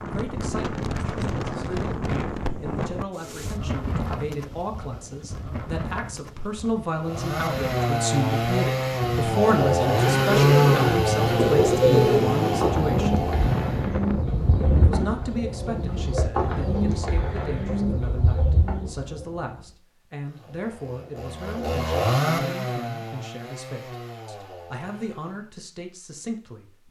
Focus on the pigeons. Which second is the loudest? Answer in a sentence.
The loudest moment of the pigeons is at 12 seconds.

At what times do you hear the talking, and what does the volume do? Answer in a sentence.
The talking can be heard from 0.0 to 13.2 s, getting louder; and from 14.8 to 26.8 s, at a steady volume.